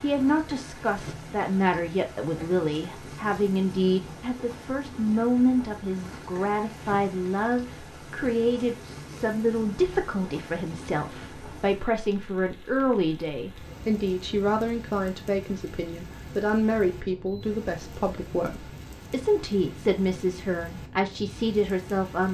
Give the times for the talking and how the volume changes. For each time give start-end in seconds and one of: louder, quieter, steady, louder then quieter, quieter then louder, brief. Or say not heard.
0.0-22.2 steady.